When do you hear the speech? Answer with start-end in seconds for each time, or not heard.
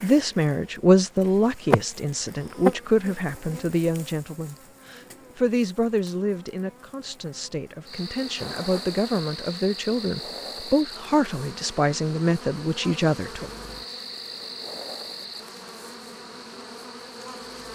0.0-13.5.